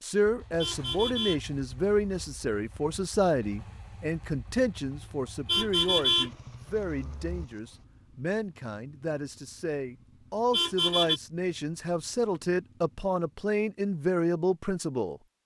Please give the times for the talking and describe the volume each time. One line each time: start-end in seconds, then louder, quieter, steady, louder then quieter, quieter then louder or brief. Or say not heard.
0.0-15.2 quieter then louder.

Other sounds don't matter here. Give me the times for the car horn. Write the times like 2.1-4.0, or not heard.
0.6-2.5, 5.5-7.5, 10.5-11.2.